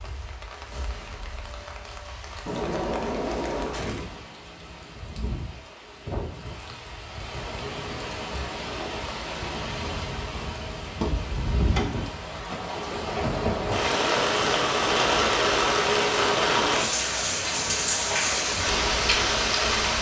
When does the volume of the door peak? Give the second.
3 s.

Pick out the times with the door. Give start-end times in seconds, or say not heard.
2.5-4.2, 13.4-14.2.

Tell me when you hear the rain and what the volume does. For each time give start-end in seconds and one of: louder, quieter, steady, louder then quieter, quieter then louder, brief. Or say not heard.
0.0-19.9 louder.